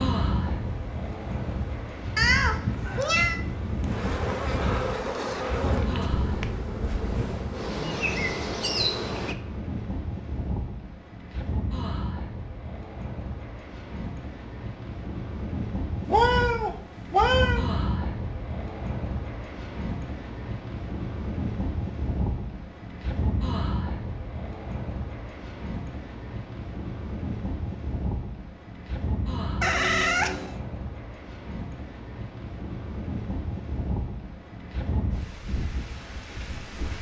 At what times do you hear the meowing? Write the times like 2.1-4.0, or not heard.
2.1-3.4, 16.1-17.6, 29.6-30.6.